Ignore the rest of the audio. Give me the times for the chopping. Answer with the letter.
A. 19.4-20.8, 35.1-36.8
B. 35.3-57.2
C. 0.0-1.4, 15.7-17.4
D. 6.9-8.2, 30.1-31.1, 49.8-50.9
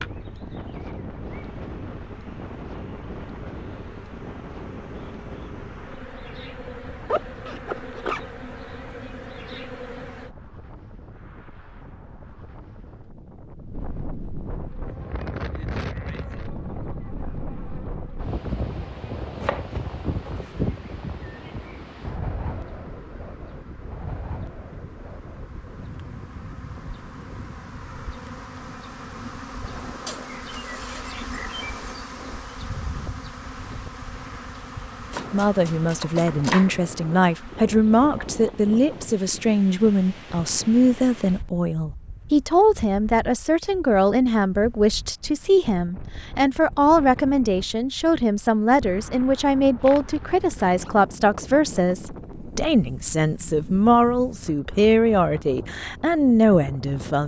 A.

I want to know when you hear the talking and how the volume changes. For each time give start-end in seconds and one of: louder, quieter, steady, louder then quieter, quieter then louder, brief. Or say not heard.
35.3-57.2 steady.